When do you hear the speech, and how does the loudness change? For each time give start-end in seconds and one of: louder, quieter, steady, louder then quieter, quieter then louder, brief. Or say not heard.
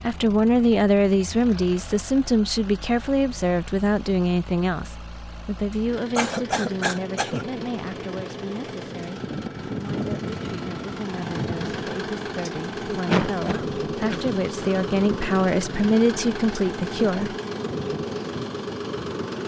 0.0-17.4 quieter then louder.